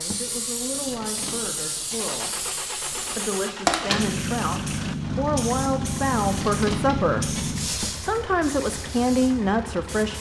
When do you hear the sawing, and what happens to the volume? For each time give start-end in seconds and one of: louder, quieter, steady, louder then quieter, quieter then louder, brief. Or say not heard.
not heard.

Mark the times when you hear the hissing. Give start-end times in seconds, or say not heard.
0.0-10.1.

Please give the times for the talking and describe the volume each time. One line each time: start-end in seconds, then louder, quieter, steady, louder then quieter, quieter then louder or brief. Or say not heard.
0.0-10.1 louder.